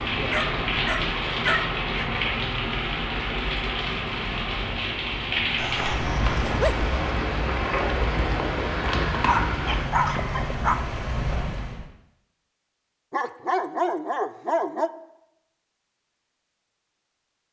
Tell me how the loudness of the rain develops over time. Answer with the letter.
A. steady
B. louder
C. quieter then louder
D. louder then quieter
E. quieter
A.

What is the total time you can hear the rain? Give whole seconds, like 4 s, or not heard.
12 s.